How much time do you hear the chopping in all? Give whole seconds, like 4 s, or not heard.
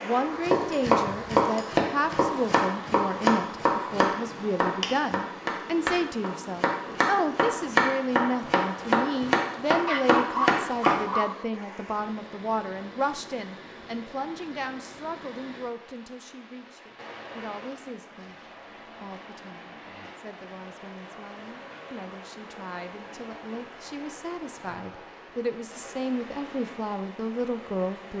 11 s.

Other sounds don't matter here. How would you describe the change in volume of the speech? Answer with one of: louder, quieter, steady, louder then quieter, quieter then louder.
quieter then louder.